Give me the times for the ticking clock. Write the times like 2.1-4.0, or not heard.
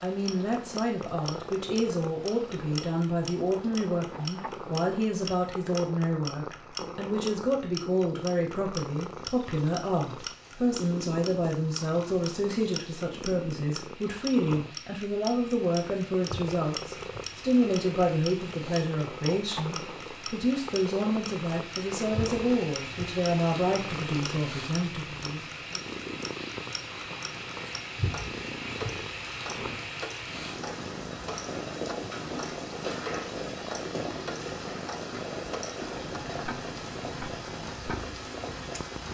0.0-38.9.